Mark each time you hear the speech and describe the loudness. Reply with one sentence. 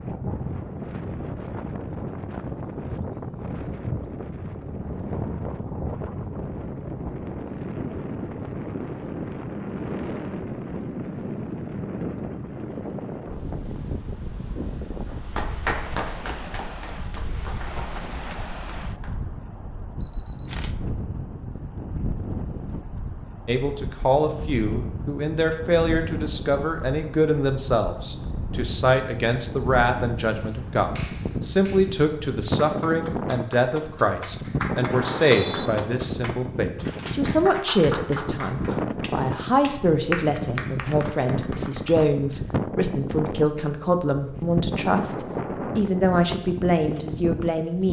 You can hear the speech from 23.4 to 47.8 s, at a steady volume.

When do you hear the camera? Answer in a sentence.
The camera can be heard from 20.0 to 20.8 s.